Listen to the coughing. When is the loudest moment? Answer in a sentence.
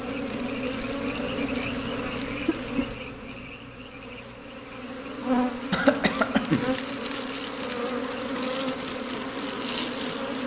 The loudest moment of the coughing is at 6 seconds.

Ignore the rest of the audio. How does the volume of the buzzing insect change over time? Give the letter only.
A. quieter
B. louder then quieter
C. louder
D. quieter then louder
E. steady
D.